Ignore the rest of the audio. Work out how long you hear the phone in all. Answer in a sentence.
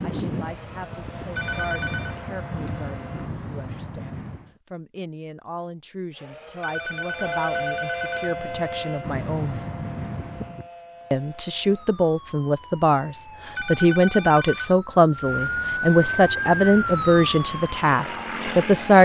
The phone can be heard for 4 seconds in total.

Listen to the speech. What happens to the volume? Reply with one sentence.
The loudness of the speech goes up.